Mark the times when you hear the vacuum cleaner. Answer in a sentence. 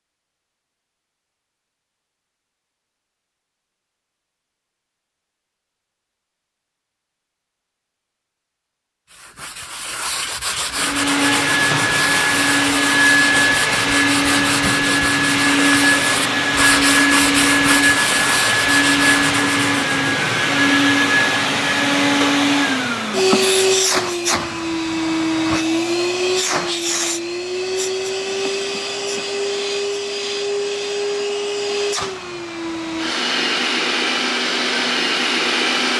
The vacuum cleaner can be heard from 10.7 to 35.9 s.